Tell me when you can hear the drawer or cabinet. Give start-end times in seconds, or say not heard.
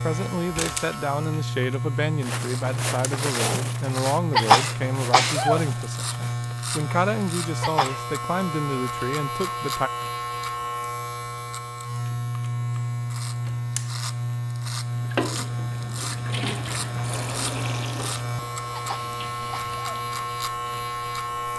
not heard.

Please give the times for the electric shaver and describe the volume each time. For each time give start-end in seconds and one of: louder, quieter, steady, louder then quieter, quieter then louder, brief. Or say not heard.
0.0-21.5 steady.